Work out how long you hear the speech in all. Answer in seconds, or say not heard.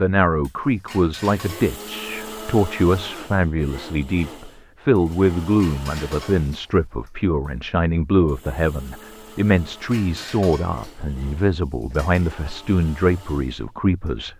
14 s.